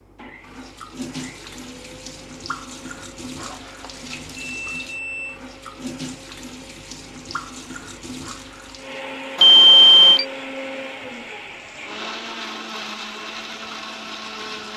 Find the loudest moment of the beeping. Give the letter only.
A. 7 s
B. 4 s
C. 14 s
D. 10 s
D.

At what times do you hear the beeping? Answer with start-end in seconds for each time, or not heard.
3.4-5.3, 9.3-10.2.